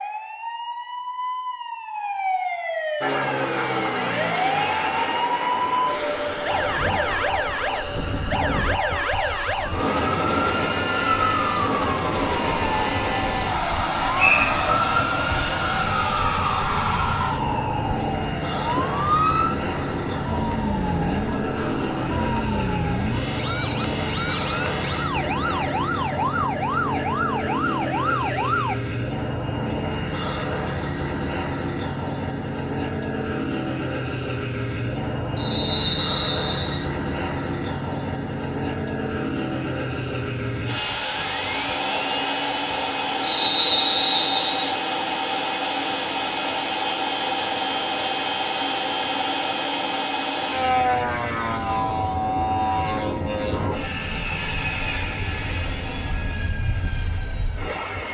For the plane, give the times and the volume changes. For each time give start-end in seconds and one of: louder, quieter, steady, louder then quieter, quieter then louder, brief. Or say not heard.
3.0-58.0 steady.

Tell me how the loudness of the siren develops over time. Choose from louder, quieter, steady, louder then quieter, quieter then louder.
steady.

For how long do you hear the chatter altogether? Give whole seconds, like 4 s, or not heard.
not heard.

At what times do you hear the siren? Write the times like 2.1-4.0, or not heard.
0.0-28.8.